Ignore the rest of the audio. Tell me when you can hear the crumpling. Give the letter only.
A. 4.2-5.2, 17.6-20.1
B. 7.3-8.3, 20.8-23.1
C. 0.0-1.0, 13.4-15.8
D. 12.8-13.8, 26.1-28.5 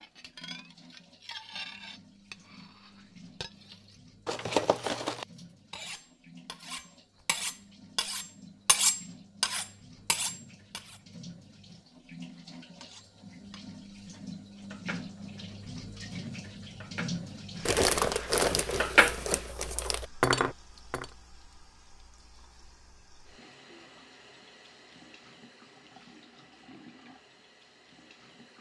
A.